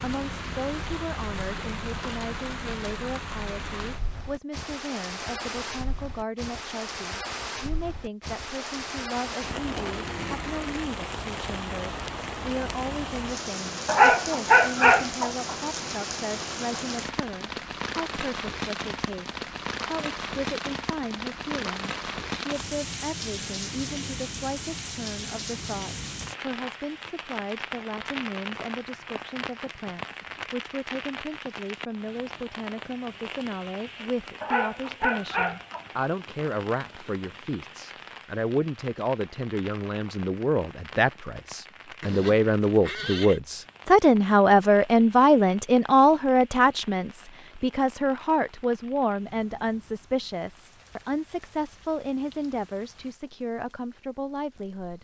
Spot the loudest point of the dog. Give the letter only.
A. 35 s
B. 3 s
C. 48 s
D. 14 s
D.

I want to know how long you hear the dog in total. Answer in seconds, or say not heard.
3 s.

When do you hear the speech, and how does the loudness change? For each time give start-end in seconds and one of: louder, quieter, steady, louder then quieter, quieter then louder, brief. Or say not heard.
0.0-55.0 louder.